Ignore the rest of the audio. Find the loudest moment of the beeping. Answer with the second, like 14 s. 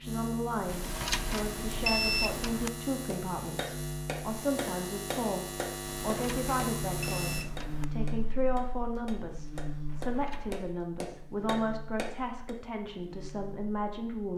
2 s.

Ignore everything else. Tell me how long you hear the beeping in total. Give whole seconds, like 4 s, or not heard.
5 s.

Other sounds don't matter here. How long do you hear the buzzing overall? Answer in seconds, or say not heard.
14 s.